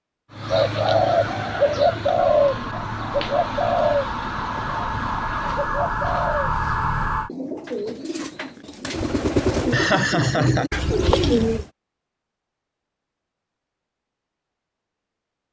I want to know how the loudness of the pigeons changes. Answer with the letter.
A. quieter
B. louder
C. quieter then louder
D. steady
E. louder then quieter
C.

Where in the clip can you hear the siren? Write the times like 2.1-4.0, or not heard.
2.2-7.3.